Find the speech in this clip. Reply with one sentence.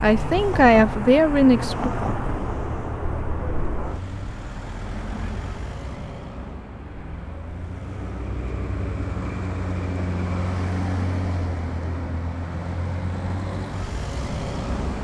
The speech can be heard from 0.0 to 1.9 s.